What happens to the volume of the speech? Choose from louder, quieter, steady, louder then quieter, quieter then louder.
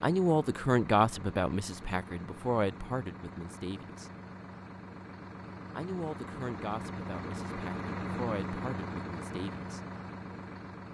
quieter.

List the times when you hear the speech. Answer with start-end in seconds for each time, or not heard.
0.0-4.1, 5.7-9.8.